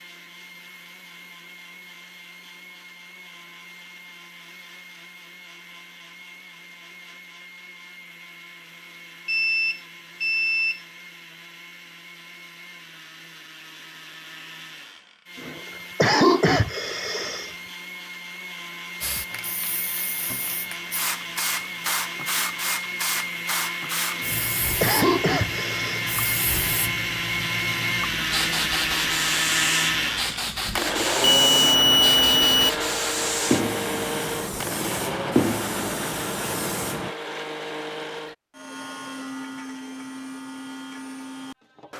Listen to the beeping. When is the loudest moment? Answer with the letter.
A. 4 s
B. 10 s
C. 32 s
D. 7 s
C.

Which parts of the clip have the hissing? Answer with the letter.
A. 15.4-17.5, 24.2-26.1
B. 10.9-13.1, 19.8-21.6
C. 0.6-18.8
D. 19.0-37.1
D.